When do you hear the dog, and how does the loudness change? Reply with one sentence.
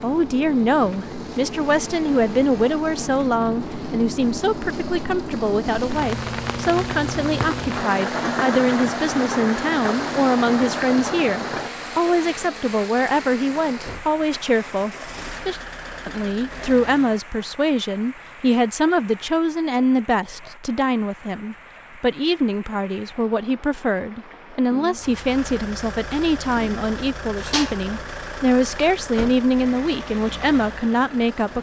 You can't hear the dog here.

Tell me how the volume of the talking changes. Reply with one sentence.
The volume of the talking stays about the same.